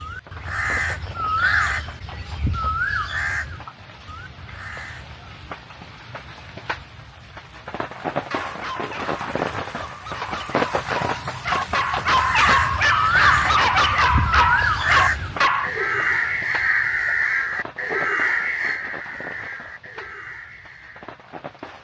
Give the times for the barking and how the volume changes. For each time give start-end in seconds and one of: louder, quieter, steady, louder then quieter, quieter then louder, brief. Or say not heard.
8.1-15.7 louder.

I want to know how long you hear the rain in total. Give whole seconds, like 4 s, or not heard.
22 s.